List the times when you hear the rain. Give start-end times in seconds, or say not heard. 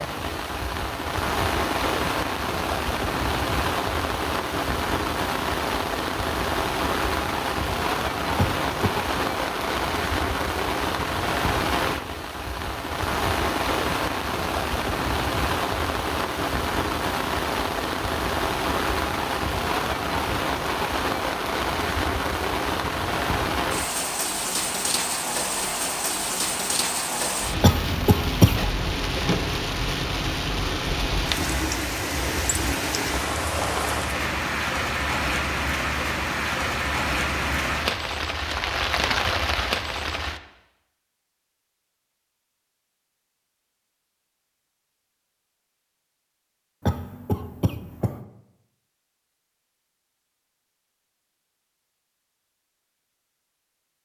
0.0-40.4.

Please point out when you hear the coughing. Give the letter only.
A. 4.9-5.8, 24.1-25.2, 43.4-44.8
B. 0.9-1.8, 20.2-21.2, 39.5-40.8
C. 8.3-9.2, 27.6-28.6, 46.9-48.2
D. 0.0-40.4
C.